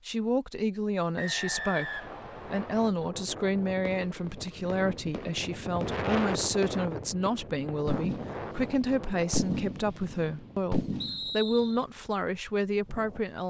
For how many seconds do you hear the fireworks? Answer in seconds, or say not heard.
8 s.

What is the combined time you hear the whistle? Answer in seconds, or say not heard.
3 s.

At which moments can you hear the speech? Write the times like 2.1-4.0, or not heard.
0.1-13.4.